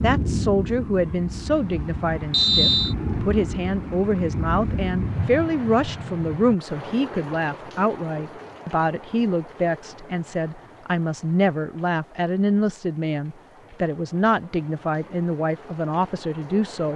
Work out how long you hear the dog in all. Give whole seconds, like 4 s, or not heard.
not heard.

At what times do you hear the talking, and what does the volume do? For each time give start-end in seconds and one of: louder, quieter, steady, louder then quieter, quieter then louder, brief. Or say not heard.
0.0-16.9 steady.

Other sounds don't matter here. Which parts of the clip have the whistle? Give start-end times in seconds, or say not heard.
2.3-3.0.